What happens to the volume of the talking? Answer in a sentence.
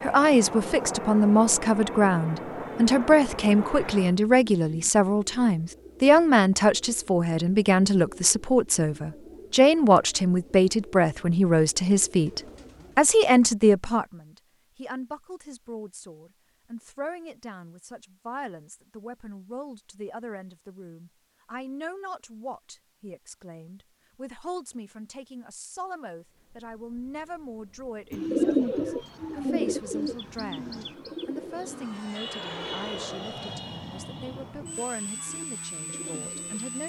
The loudness of the talking goes down.